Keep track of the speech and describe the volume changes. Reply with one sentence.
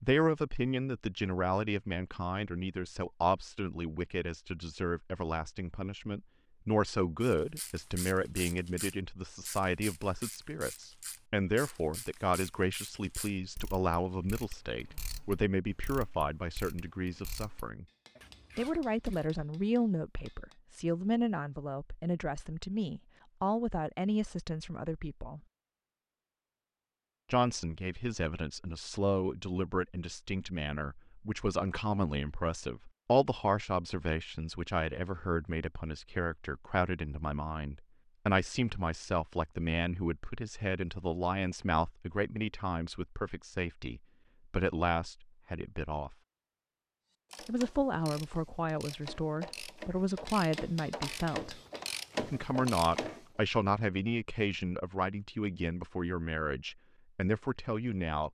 The volume of the speech stays about the same.